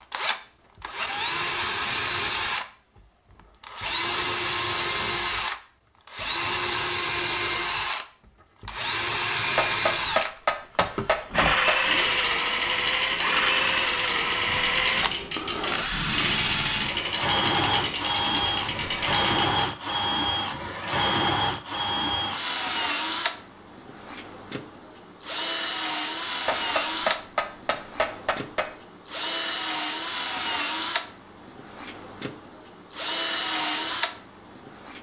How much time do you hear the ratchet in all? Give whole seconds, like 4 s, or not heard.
8 s.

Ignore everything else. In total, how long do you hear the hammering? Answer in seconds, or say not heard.
5 s.